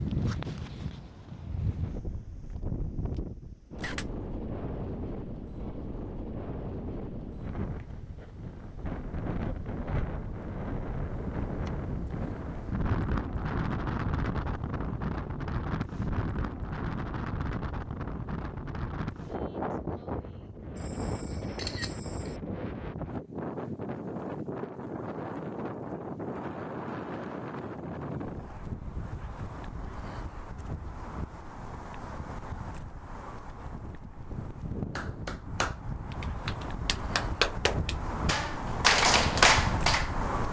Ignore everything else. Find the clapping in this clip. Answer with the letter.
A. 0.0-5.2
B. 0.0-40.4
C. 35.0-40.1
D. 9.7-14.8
C.